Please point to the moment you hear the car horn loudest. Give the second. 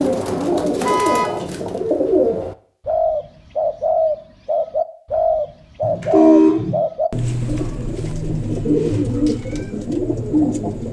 6 s.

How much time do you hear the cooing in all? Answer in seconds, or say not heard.
11 s.